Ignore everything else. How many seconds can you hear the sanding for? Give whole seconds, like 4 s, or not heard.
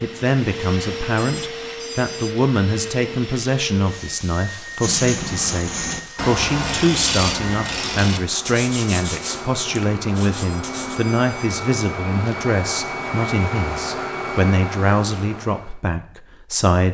6 s.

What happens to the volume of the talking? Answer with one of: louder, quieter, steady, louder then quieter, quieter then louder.
steady.